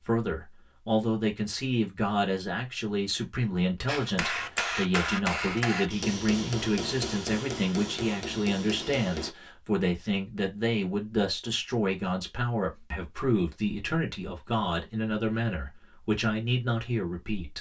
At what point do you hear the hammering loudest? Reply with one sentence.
The volume of the hammering peaks at 5 seconds.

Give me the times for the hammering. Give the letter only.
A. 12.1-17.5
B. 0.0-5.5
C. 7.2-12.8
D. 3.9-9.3
D.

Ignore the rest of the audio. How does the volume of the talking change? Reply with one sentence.
The loudness of the talking stays about the same.